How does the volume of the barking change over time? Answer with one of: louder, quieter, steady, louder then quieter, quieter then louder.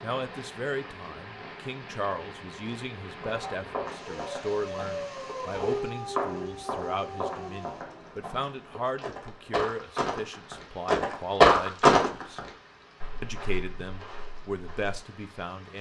louder then quieter.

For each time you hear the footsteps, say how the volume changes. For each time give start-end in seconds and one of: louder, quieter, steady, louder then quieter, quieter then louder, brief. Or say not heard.
3.2-14.9 louder then quieter.